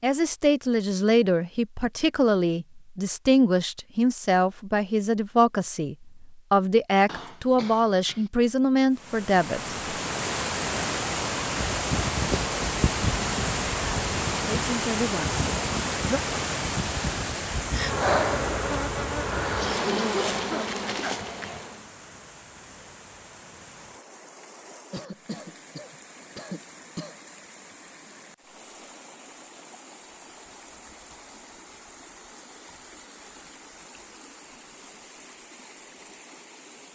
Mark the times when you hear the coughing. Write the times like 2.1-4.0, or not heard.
7.0-8.3, 19.4-21.1, 24.9-27.1.